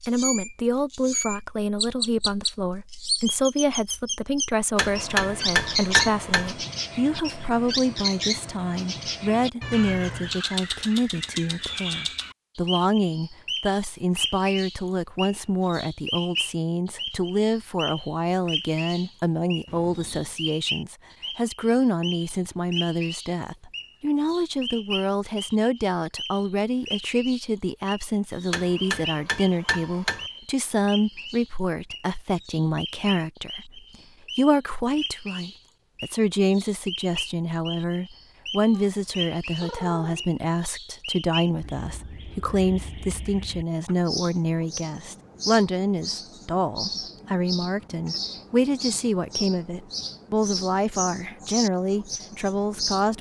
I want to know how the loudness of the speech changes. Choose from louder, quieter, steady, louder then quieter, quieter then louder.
steady.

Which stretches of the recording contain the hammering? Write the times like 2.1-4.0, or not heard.
4.8-6.5, 28.5-30.3.